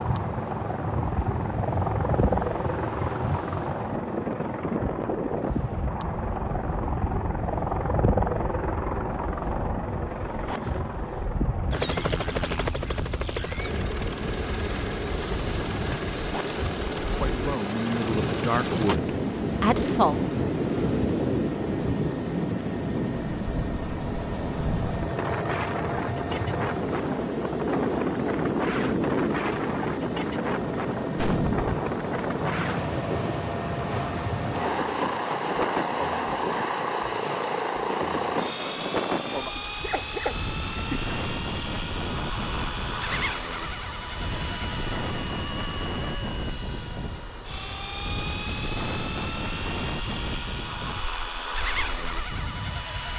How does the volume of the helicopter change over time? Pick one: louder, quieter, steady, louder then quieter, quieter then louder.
steady.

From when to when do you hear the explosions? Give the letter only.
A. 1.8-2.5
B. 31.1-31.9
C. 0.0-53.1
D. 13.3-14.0
B.